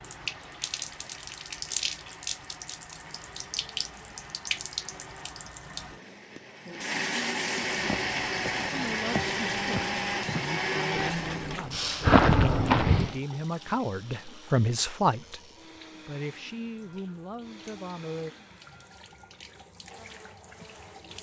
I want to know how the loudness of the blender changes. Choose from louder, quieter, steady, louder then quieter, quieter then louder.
louder then quieter.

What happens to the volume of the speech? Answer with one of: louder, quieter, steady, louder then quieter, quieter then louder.
louder then quieter.